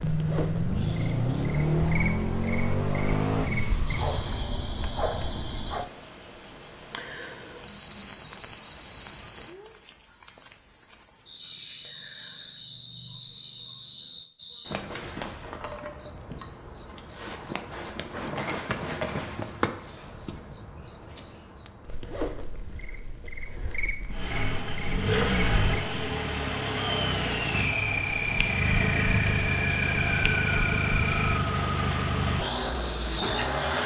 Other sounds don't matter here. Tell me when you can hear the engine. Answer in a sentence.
The engine can be heard from 0.0 to 4.4 s and from 24.1 to 33.8 s.